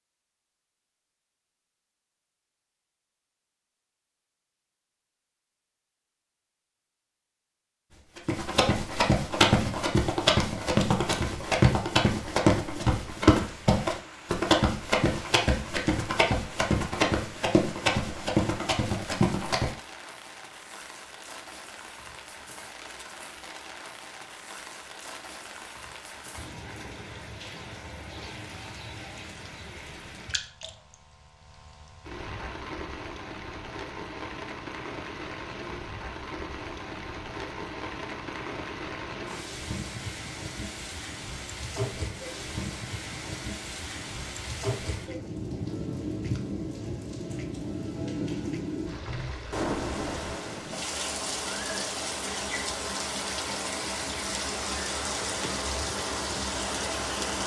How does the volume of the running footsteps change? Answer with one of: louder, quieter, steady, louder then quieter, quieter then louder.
steady.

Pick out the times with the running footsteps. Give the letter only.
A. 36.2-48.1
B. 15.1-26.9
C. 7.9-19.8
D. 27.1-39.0
C.